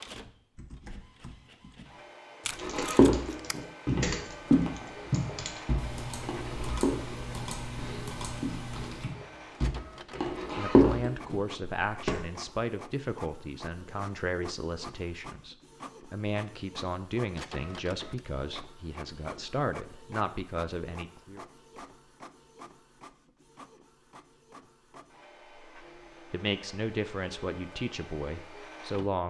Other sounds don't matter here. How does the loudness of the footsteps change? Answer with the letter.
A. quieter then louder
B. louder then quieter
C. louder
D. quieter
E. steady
A.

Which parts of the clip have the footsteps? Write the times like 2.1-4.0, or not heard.
2.6-12.2.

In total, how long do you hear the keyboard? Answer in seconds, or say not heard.
9 s.